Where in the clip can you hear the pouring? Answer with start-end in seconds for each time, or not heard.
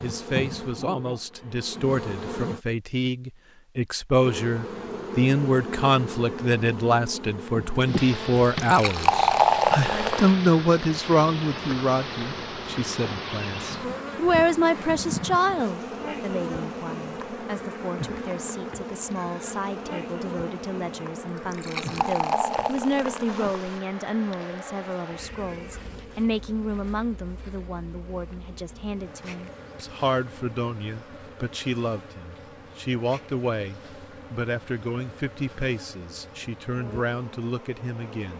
8.6-10.3, 21.3-23.8.